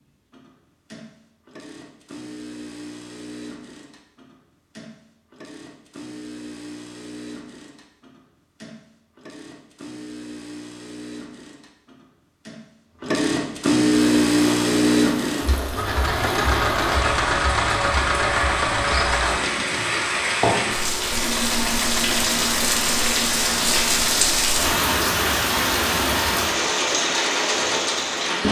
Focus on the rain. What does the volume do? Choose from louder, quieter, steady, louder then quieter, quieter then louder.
louder.